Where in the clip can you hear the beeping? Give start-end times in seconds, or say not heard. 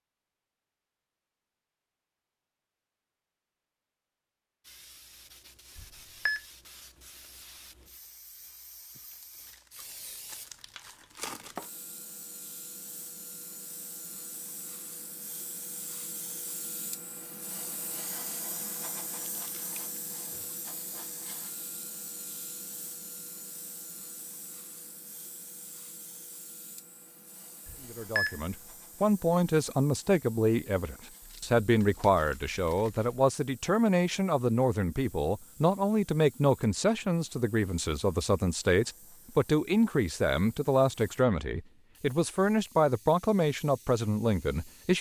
5.8-6.4, 27.6-28.4.